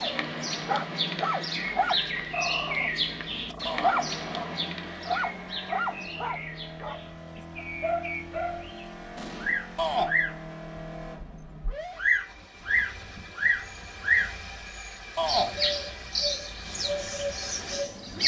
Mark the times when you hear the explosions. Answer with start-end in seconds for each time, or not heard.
9.2-9.6.